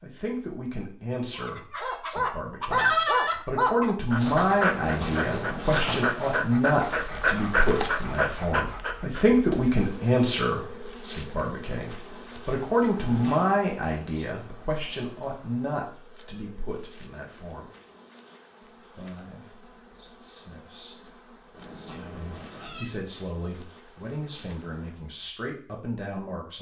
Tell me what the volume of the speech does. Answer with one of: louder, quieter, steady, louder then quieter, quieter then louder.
quieter.